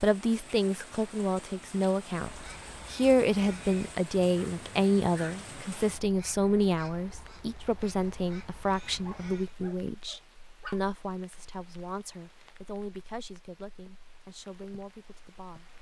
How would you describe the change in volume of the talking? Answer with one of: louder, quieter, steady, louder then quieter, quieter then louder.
quieter.